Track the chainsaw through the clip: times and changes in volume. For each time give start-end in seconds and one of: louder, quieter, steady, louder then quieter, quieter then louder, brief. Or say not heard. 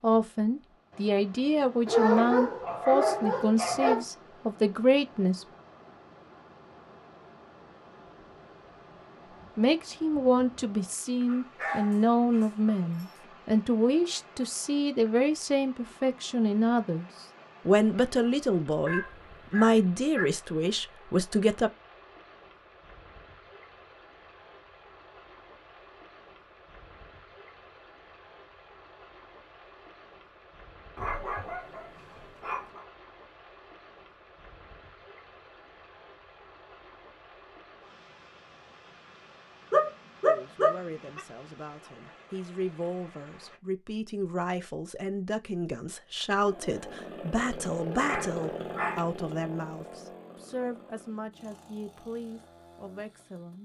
46.5-53.5 quieter.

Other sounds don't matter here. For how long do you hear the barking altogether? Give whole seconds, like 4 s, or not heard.
10 s.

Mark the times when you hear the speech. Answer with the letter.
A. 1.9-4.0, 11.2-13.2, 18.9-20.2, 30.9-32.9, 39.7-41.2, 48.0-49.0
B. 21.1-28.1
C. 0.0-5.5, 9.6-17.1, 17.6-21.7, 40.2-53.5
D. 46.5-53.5
C.